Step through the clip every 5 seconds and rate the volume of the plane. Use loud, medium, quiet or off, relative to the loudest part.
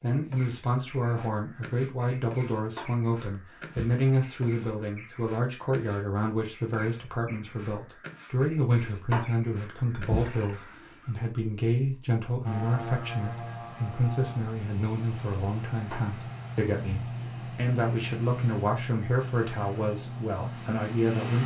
off, off, loud, loud, loud.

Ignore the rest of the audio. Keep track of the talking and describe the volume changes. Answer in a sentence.
The loudness of the talking stays about the same.